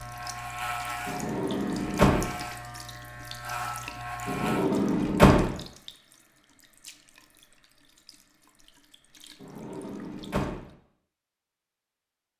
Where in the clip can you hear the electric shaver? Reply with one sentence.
You can hear the electric shaver from 0.0 to 4.7 s.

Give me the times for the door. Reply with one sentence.
The door can be heard from 1.1 to 2.2 s, from 4.2 to 5.5 s and from 9.4 to 10.6 s.